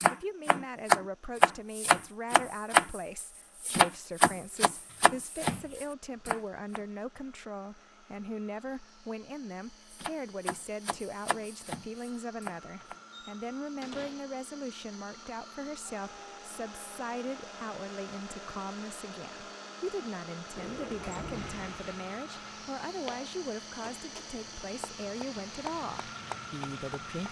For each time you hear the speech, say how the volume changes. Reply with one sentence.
You can hear the speech from 0.0 to 27.2 s, at a steady volume.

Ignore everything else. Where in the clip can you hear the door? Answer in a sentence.
You can hear the door from 4.3 to 5.8 s, from 12.8 to 14.3 s and from 20.6 to 21.9 s.